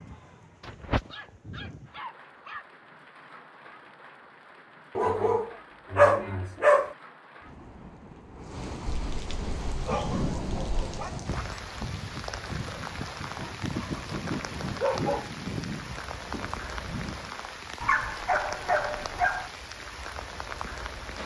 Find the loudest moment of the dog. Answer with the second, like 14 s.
6 s.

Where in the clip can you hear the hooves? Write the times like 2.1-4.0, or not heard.
9.2-17.4.